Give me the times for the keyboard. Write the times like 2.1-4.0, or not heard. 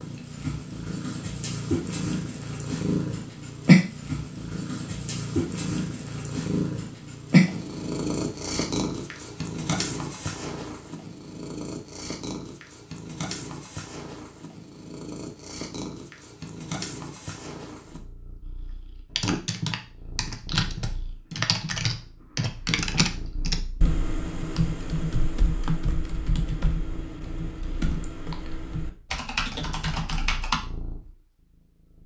19.1-30.6.